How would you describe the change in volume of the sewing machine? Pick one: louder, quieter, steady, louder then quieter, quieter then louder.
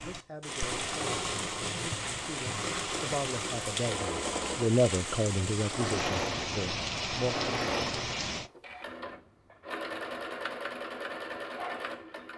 steady.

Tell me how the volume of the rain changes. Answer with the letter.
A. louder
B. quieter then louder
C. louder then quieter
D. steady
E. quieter
D.